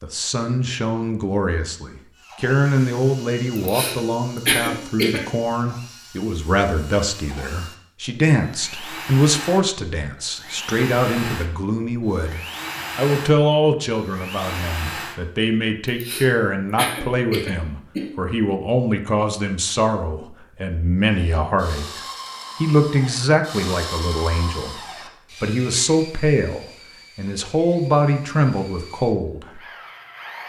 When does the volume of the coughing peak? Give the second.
5 s.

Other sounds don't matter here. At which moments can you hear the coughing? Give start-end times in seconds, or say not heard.
3.5-5.2, 15.8-18.1.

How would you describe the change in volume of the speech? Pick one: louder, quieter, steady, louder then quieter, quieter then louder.
steady.